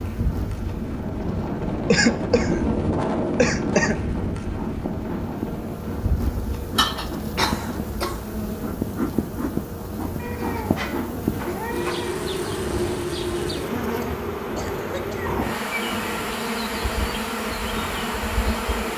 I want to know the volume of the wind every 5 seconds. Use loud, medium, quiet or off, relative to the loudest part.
loud, medium, medium, medium.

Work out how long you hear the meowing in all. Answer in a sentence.
The meowing can be heard for 2 seconds in total.